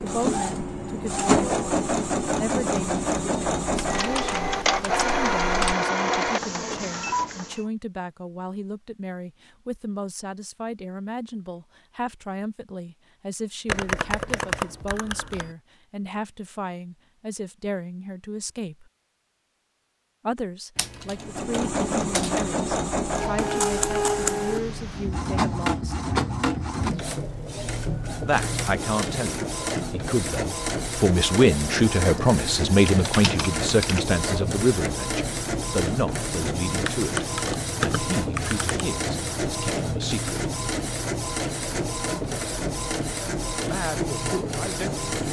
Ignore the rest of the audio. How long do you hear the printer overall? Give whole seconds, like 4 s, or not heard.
32 s.